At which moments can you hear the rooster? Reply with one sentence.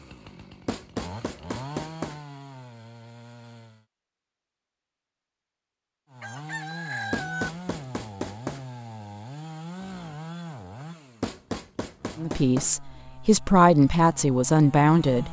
You can hear the rooster from 6.2 to 7.5 s.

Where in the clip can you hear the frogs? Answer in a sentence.
The frogs can't be heard in this clip.